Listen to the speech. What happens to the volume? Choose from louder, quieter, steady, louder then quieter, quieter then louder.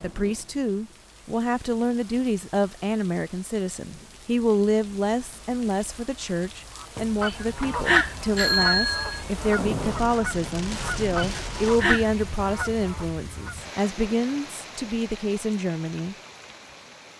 steady.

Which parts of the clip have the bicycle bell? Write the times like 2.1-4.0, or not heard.
8.3-9.2.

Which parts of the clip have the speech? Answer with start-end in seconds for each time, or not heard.
0.0-16.1.